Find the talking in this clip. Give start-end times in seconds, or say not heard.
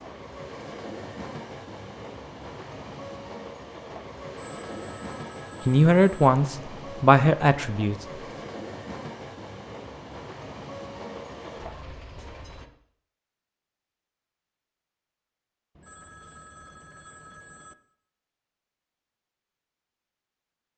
5.7-8.1.